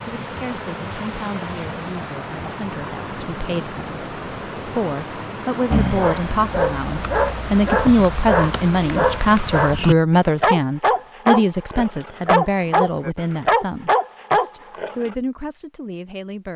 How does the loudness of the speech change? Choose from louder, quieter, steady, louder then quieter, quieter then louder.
louder then quieter.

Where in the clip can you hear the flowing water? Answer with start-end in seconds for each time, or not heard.
0.0-9.8.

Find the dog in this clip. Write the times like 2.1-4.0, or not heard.
5.7-15.2.